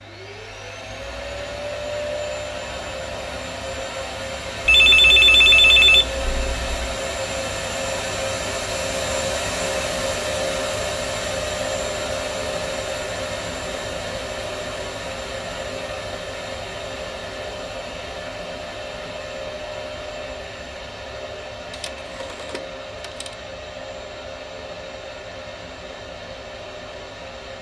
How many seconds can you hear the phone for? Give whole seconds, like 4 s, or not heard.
4 s.